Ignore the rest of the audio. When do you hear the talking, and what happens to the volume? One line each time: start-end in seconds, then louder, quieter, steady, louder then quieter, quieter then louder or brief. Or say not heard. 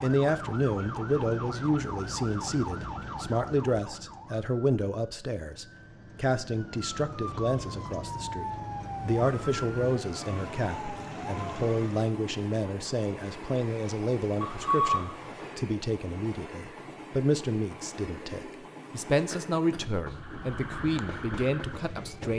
0.0-22.3 steady.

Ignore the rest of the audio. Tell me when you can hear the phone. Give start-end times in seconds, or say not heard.
14.4-15.5.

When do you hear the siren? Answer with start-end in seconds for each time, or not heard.
0.0-12.1, 20.1-22.3.